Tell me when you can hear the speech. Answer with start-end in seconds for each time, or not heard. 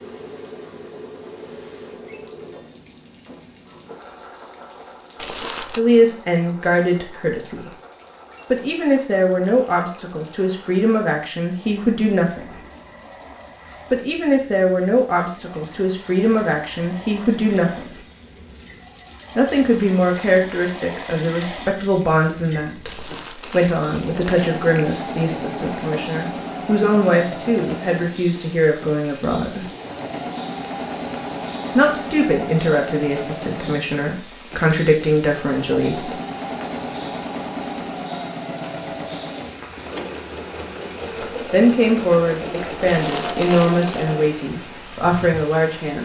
5.8-7.7, 8.5-12.6, 13.9-17.9, 19.4-29.6, 31.8-36.1, 41.0-46.0.